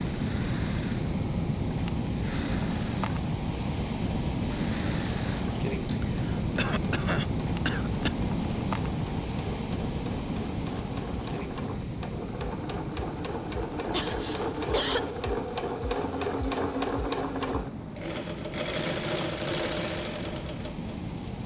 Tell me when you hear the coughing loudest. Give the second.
15 s.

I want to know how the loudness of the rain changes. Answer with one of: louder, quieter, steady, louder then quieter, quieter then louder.
quieter.